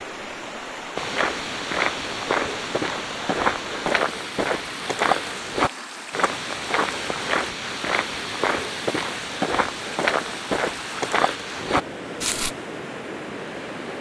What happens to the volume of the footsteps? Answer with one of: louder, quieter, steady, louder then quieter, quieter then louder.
steady.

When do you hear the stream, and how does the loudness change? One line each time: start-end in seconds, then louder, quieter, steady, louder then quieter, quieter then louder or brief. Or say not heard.
0.0-13.9 steady.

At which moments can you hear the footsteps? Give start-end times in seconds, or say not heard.
0.9-12.5.